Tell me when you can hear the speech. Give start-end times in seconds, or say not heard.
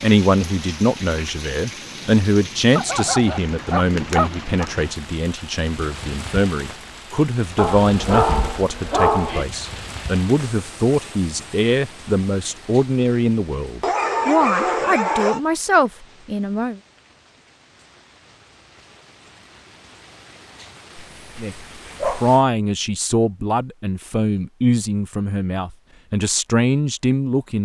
0.0-16.8, 21.4-27.6.